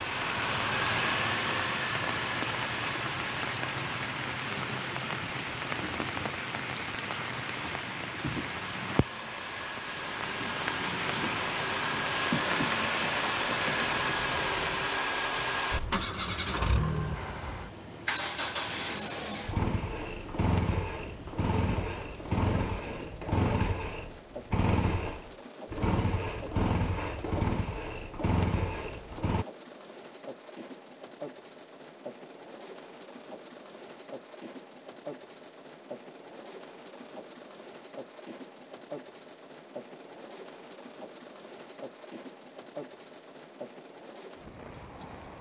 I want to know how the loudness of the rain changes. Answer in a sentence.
The volume of the rain goes down.